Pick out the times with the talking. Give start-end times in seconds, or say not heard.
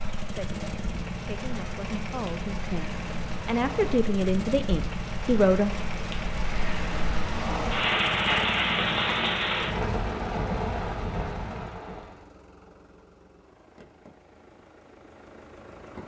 0.3-5.7.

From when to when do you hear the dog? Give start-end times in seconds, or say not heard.
not heard.